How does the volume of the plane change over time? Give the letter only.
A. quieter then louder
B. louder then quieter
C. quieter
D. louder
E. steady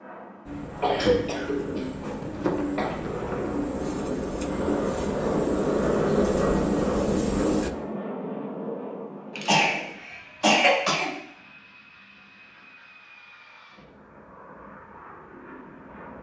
B.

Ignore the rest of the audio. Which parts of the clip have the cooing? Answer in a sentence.
The cooing can be heard from 0.5 to 7.8 s.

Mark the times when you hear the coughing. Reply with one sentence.
You can hear the coughing from 0.8 to 3.5 s and from 9.3 to 11.1 s.